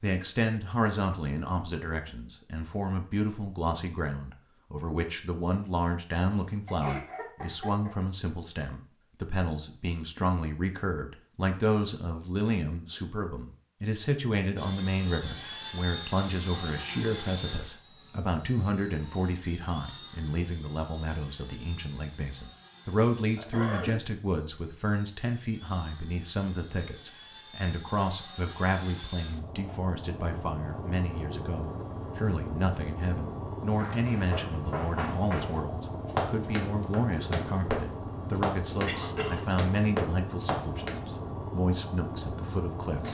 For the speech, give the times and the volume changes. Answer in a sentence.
The speech can be heard from 0.0 to 43.0 s, at a steady volume.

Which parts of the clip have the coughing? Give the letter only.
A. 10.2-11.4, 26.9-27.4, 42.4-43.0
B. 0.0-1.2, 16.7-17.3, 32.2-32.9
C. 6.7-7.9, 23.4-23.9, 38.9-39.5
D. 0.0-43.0
C.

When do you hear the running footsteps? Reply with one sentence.
You can hear the running footsteps from 33.8 to 41.0 s.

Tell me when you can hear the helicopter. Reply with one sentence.
You can hear the helicopter from 14.6 to 43.0 s.